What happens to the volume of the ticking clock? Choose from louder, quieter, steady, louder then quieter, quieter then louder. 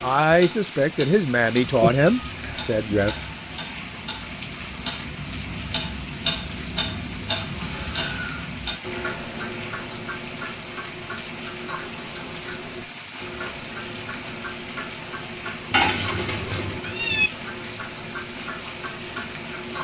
louder then quieter.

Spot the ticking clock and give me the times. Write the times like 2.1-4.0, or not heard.
0.0-19.7.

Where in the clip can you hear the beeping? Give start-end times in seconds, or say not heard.
not heard.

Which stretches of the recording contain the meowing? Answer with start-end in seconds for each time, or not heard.
1.6-3.4, 15.7-17.3.